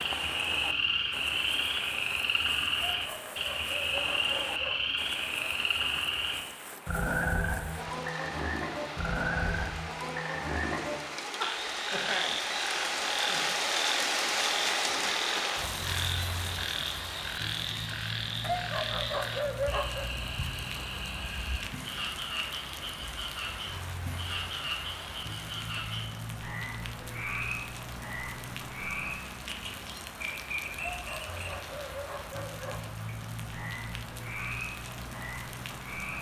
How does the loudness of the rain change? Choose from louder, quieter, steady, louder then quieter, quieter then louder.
louder then quieter.